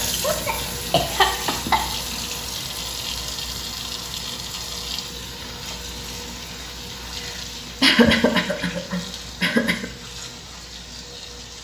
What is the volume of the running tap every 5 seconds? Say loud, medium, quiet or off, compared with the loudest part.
loud, medium, medium.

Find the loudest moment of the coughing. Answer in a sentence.
The loudest moment of the coughing is at 8 seconds.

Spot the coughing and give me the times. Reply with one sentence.
You can hear the coughing from 0.2 to 1.8 s and from 7.8 to 9.8 s.